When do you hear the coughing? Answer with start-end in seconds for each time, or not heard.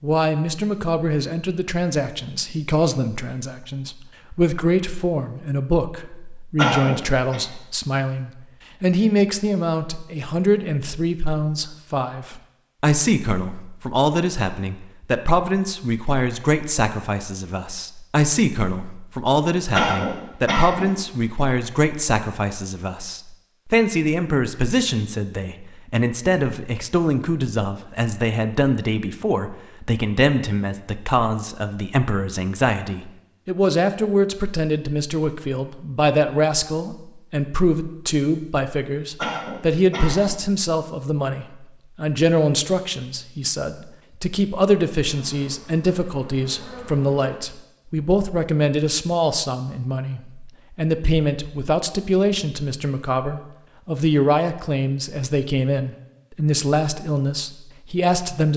6.5-7.4, 19.7-20.9, 39.1-40.4.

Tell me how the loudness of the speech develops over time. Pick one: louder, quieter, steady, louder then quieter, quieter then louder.
steady.